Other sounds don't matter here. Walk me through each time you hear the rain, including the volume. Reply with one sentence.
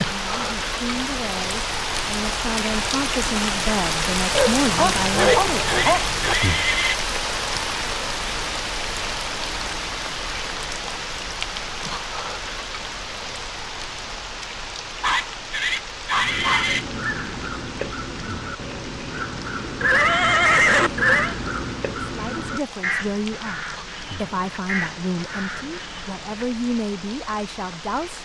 You can hear the rain from 0.0 to 28.2 s, getting quieter.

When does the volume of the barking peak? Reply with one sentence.
The loudest moment of the barking is at 5 seconds.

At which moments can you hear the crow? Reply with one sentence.
You can hear the crow from 16.1 to 26.4 s.